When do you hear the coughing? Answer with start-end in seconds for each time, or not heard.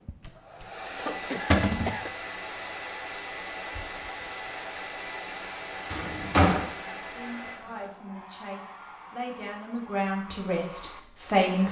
0.9-2.1.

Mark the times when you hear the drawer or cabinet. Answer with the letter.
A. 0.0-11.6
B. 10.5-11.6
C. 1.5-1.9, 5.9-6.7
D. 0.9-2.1
C.